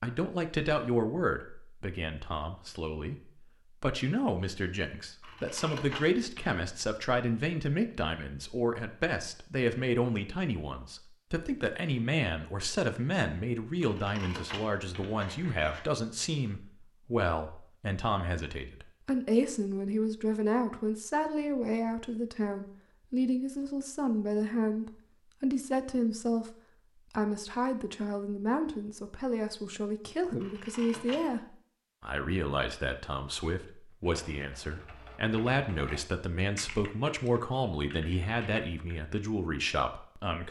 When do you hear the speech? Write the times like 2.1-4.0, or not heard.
0.0-40.4.